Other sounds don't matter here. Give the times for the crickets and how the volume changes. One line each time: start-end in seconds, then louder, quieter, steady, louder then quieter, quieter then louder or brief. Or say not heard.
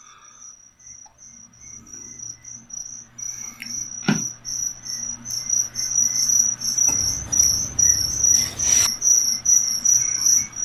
0.0-10.6 louder.